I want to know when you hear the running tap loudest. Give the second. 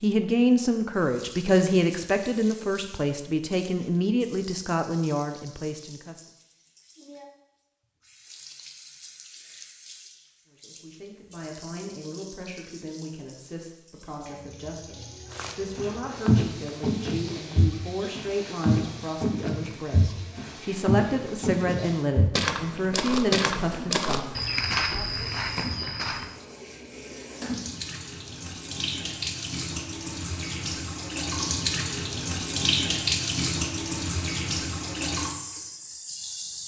33 s.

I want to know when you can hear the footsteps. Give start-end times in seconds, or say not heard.
15.3-26.3.